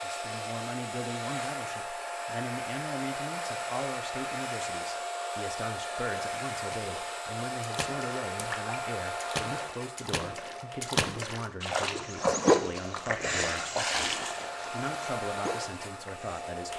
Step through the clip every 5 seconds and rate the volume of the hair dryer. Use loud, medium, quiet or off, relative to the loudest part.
loud, loud, medium, loud.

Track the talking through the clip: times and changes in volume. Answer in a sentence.
The talking can be heard from 0.0 to 16.7 s, at a steady volume.